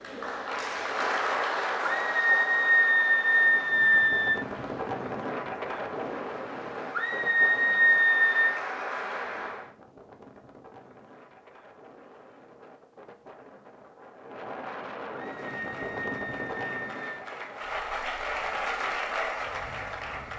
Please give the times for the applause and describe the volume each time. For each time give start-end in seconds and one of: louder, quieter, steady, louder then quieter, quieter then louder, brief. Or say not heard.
0.0-9.7 quieter then louder
15.2-20.3 louder.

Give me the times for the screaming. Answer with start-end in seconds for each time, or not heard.
1.9-4.4, 6.9-8.6, 15.2-17.2.